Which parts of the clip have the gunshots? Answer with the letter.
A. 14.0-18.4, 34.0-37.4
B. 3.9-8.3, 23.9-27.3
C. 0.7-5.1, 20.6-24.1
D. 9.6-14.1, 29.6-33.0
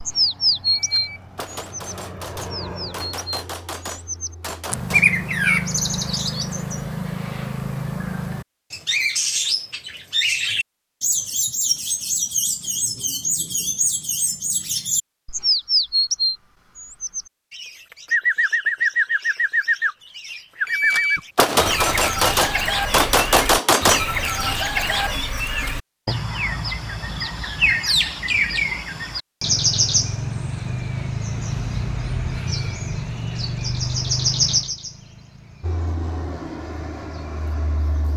C.